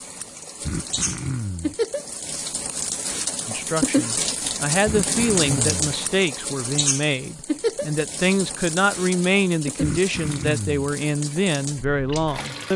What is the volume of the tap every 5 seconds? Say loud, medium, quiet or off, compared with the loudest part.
loud, loud, medium.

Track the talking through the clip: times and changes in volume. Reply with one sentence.
The talking can be heard from 3.5 to 12.7 s, at a steady volume.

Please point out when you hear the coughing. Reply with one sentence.
You can hear the coughing from 0.6 to 1.8 s, from 4.8 to 5.8 s and from 9.8 to 10.8 s.